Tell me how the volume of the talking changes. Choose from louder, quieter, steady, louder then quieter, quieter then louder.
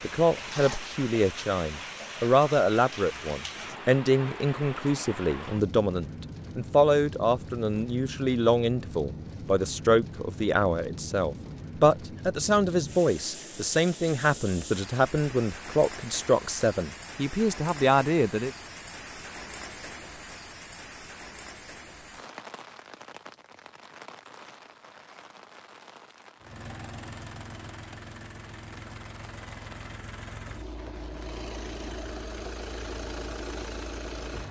steady.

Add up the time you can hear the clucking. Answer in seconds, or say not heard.
not heard.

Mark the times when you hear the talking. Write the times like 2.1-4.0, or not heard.
0.0-18.5.